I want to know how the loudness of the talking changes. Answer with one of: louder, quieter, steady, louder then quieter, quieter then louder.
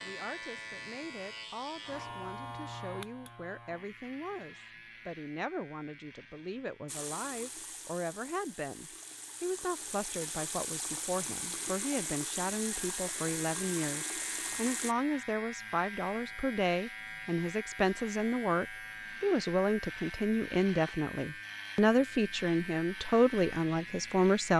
louder.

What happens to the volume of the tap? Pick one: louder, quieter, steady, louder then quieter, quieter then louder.
louder.